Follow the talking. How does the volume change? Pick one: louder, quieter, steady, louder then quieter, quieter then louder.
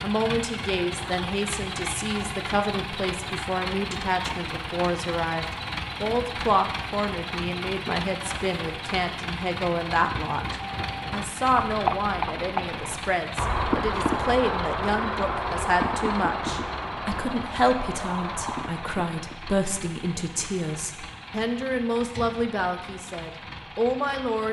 steady.